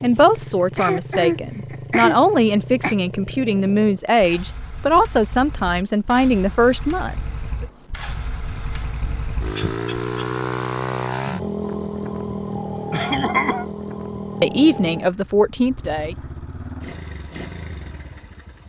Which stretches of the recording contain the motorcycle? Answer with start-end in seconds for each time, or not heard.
0.0-18.6.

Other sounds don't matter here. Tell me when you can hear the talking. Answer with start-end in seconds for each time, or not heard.
0.0-7.7, 14.4-16.1.